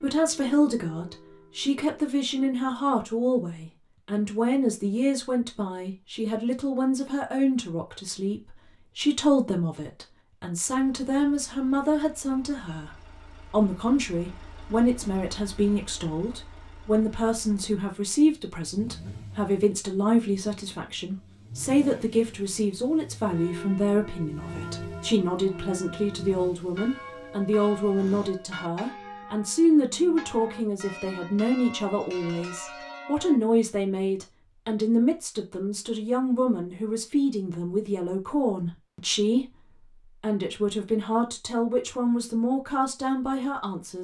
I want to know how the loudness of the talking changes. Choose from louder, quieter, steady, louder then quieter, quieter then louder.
steady.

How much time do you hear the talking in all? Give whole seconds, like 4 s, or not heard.
44 s.